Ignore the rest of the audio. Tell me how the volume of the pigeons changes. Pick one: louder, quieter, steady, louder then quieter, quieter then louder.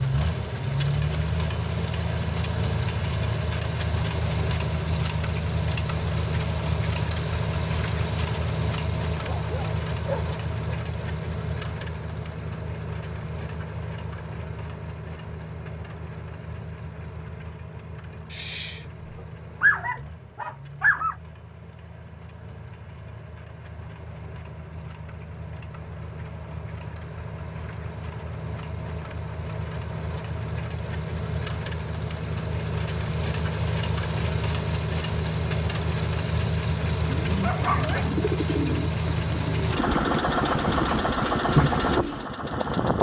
louder.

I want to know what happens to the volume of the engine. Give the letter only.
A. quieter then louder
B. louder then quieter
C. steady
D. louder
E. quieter
A.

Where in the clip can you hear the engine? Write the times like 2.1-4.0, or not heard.
0.0-42.9.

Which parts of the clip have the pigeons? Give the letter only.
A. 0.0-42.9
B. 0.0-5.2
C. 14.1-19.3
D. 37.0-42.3
D.